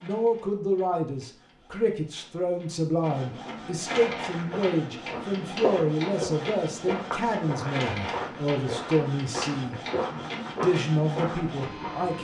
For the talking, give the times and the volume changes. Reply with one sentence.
The talking can be heard from 0.0 to 9.8 s, at a steady volume; and briefly from 10.6 to 12.1 s.